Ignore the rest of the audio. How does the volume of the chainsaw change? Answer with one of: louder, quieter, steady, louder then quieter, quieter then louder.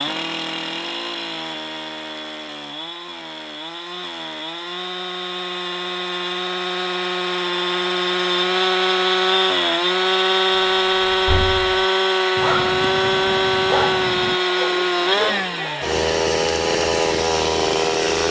louder.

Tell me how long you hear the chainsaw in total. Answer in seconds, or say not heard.
18 s.